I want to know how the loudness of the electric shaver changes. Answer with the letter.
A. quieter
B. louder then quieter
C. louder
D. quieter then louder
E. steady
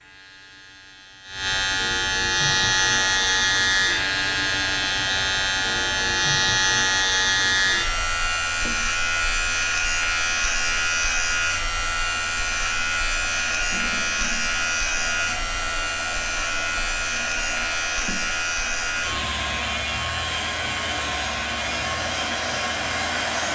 A.